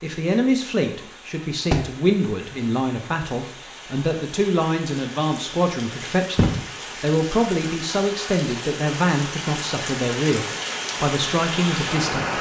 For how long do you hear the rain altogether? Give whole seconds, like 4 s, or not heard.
12 s.